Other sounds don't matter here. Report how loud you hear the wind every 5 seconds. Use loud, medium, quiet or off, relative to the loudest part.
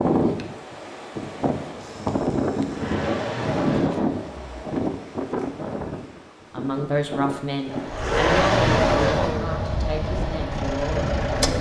loud, medium, medium.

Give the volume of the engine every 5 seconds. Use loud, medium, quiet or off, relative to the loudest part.
medium, loud, medium.